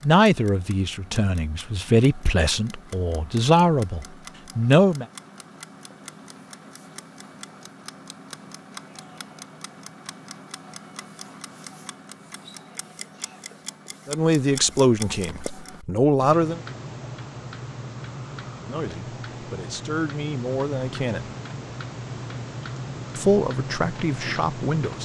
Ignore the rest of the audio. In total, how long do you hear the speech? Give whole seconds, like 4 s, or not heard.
12 s.